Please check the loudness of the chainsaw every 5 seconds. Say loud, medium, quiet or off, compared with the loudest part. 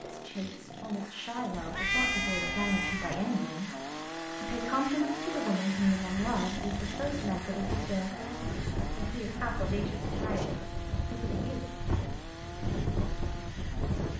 loud, loud, medium.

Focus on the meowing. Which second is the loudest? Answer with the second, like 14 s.
2 s.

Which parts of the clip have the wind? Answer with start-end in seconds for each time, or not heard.
5.8-14.1.